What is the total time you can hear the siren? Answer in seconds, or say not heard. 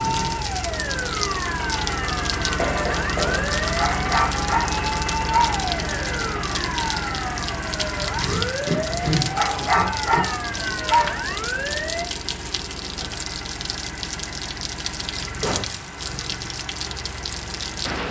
12 s.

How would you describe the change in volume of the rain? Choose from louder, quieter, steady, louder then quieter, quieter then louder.
steady.